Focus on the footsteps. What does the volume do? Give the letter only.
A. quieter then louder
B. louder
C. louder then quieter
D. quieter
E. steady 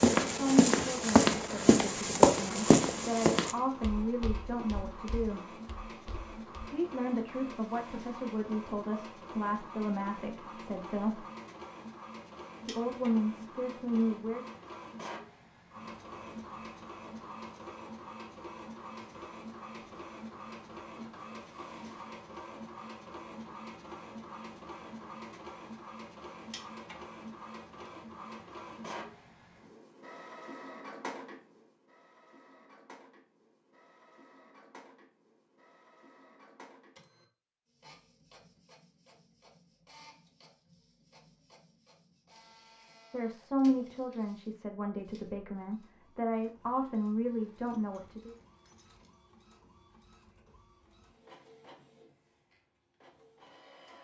D.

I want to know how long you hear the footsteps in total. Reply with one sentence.
You can hear the footsteps for 7 seconds altogether.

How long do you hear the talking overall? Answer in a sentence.
The talking can be heard for 17 seconds in total.